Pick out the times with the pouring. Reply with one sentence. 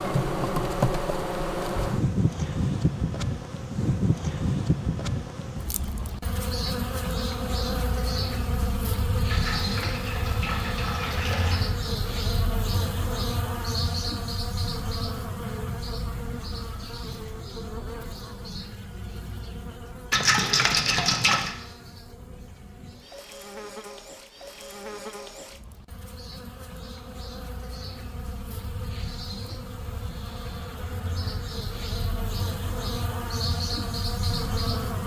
You can hear the pouring from 9.2 to 11.6 s and from 20.1 to 21.6 s.